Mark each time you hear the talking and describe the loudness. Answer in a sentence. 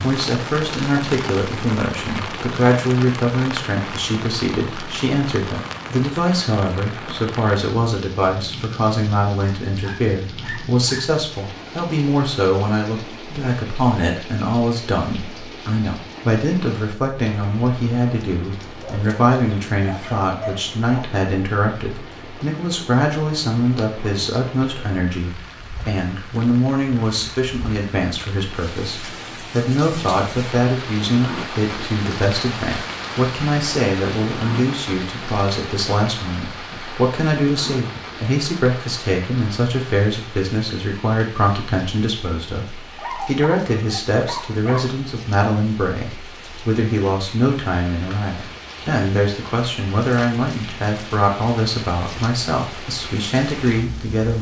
You can hear the talking from 0.0 to 54.3 s, at a steady volume.